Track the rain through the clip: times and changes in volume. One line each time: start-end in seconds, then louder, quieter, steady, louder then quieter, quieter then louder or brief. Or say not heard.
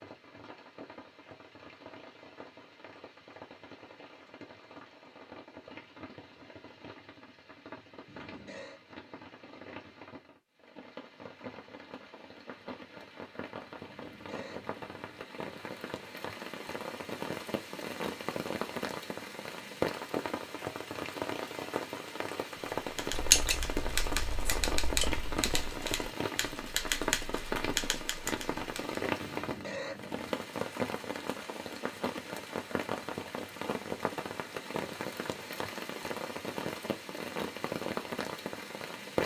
0.0-39.2 louder.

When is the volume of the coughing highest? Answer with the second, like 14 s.
30 s.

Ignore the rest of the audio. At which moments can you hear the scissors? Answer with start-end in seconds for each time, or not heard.
23.1-25.5.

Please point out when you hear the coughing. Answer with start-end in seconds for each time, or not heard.
8.1-8.8, 13.8-15.2, 29.2-30.6.